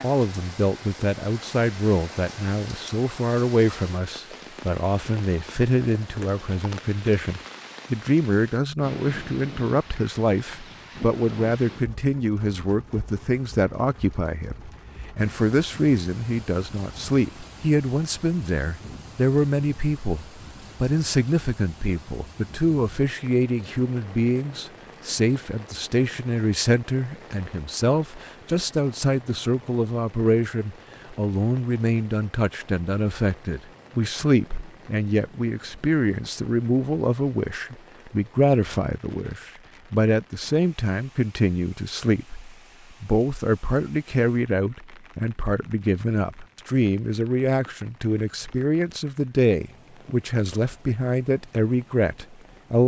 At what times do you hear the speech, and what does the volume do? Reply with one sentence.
You can hear the speech from 0.0 to 52.8 s, at a steady volume.